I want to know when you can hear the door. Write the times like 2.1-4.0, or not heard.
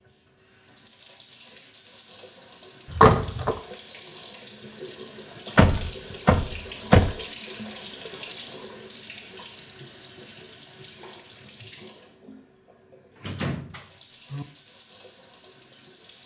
2.9-3.6, 5.5-7.2, 13.2-14.4.